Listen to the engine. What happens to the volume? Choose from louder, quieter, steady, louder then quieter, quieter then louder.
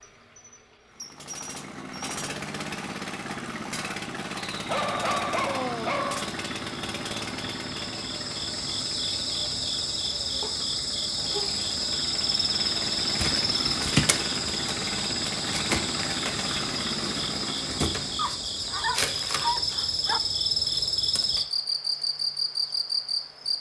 quieter then louder.